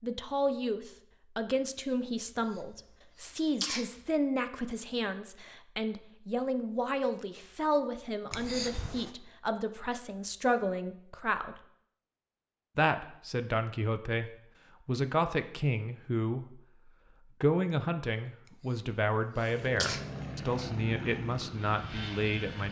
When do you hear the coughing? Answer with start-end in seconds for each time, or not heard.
2.5-3.9, 8.3-9.1, 18.7-20.0.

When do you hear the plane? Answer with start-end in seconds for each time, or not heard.
19.4-22.6.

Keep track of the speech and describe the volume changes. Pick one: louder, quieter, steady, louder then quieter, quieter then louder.
steady.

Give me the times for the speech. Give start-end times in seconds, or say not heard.
0.0-11.6, 12.8-22.6.